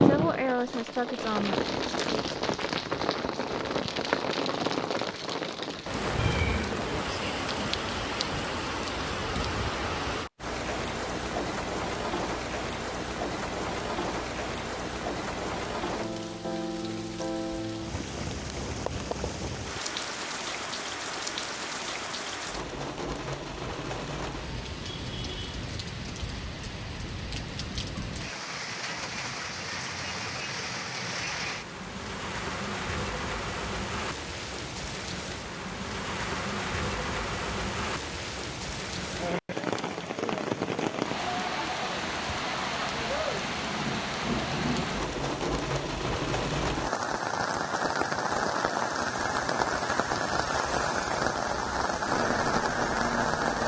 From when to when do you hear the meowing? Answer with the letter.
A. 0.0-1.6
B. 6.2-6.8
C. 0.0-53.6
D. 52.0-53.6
B.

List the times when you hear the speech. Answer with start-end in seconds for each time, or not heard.
0.0-1.6.